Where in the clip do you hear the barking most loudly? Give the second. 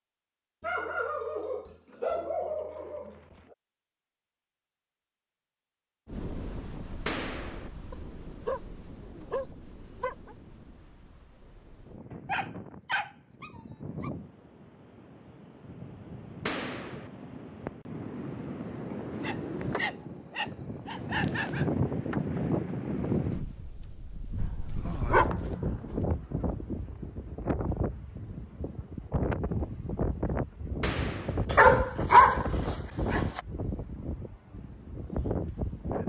32 s.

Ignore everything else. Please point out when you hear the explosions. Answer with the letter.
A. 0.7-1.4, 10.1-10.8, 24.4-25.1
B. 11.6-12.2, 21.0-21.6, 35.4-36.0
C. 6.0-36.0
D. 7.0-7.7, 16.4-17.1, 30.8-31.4
D.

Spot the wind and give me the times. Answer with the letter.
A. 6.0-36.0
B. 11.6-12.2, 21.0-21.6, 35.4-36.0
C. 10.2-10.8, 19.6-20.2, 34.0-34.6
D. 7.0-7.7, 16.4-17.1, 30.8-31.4
A.